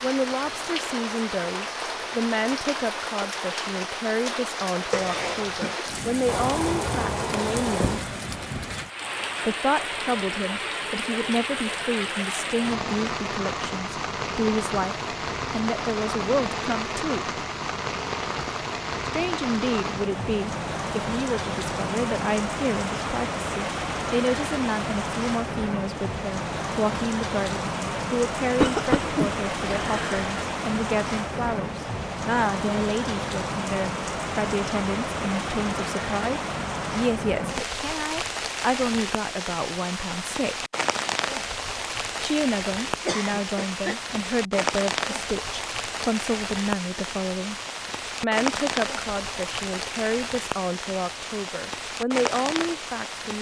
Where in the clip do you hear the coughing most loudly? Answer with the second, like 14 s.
29 s.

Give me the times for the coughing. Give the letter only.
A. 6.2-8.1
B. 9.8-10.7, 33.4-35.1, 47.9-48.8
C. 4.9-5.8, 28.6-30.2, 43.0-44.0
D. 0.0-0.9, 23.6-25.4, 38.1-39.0
C.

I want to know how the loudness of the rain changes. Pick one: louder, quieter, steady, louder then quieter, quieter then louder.
steady.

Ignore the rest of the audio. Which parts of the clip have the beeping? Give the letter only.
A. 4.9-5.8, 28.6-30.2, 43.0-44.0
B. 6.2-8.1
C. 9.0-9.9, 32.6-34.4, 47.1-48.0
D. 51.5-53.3
B.